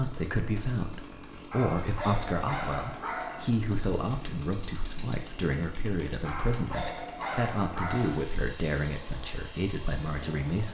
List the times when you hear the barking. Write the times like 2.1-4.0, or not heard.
1.5-3.5, 6.2-8.2.